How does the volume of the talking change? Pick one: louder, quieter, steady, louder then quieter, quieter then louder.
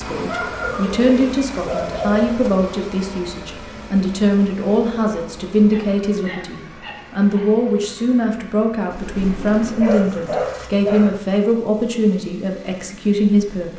steady.